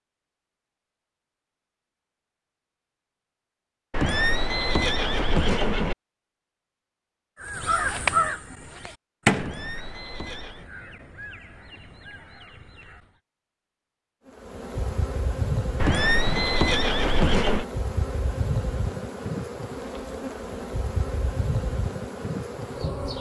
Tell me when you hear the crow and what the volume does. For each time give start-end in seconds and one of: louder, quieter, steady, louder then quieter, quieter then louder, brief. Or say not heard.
7.4-13.2 quieter.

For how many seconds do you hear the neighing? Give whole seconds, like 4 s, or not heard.
5 s.